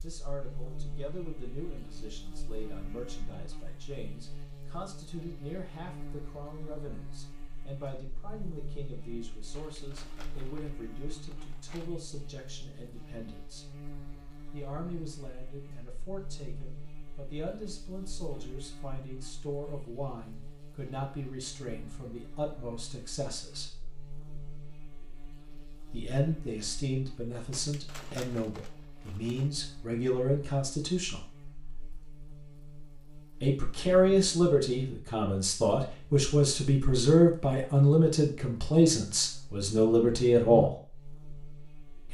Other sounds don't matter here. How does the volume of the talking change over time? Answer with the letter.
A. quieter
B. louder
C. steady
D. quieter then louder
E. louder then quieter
B.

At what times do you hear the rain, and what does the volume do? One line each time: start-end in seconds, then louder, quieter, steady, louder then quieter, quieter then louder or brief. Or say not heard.
not heard.